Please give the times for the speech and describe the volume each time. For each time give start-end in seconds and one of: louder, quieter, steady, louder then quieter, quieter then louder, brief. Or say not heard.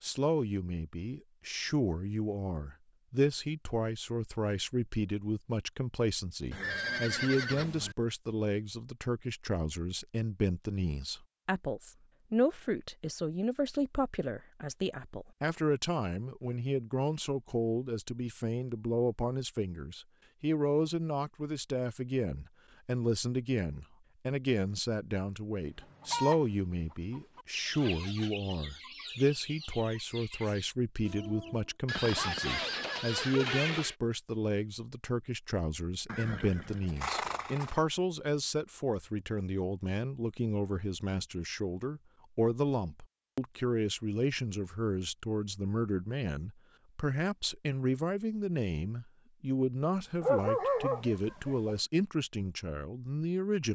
0.0-53.7 steady.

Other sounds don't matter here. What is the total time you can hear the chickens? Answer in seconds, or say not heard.
6 s.